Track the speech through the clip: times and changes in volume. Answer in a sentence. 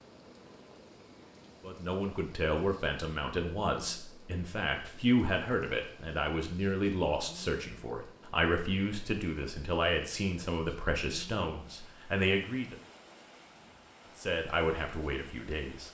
The speech can be heard from 1.6 to 12.8 s, at a steady volume; and briefly from 14.2 to 15.8 s.